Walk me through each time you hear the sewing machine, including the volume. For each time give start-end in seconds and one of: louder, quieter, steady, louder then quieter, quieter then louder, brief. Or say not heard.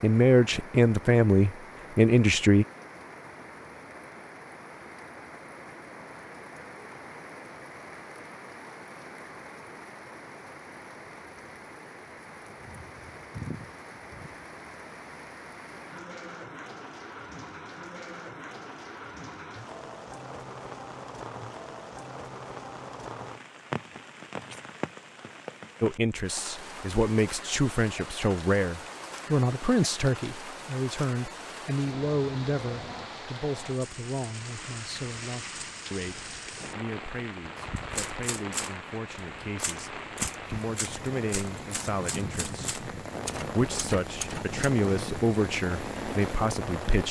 not heard.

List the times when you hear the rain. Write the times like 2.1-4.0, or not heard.
0.0-47.0.